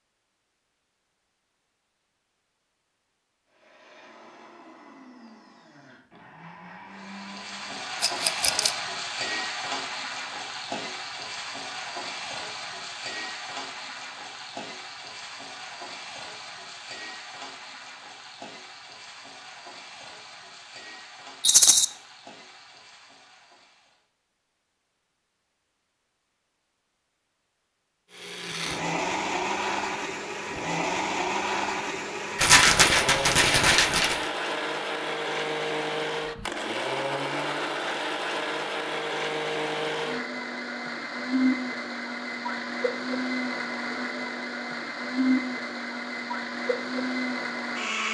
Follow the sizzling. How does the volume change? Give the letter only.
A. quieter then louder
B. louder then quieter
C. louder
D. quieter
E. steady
D.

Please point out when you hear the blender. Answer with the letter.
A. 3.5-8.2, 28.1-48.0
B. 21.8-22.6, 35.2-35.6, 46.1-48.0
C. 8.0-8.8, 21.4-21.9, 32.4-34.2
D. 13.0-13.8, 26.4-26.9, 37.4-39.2
A.